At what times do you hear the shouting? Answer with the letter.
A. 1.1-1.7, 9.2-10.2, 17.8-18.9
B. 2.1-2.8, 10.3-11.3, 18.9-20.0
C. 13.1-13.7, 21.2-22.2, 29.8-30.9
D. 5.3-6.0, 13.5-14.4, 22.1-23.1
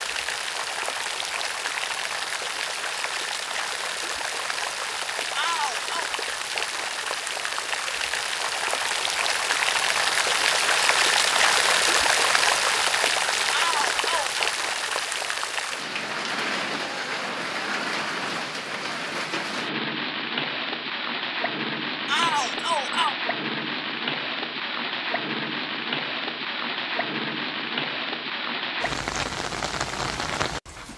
D.